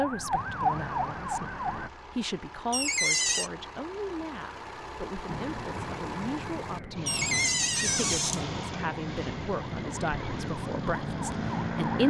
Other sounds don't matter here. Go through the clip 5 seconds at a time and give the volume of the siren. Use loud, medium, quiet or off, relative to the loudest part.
loud, medium, loud.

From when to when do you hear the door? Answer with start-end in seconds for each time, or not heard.
2.7-3.5, 7.0-8.4.